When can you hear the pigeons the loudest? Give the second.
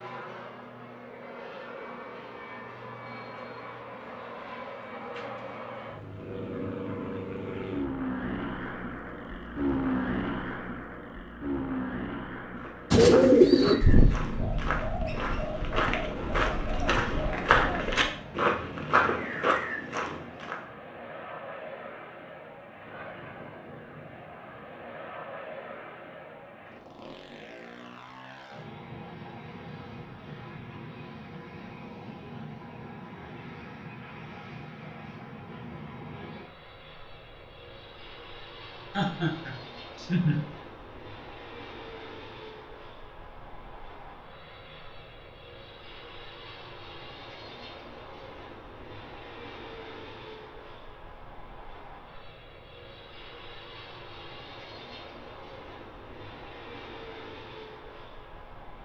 13 s.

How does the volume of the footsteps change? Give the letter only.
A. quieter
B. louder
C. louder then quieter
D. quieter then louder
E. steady
B.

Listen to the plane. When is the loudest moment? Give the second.
10 s.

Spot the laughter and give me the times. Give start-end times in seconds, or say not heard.
38.9-40.5.